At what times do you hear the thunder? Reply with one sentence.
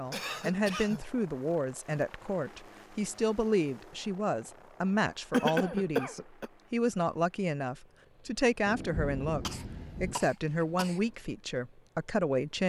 You can hear the thunder from 8.7 to 10.2 s.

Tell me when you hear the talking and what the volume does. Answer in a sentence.
The talking can be heard from 0.0 to 12.6 s, at a steady volume.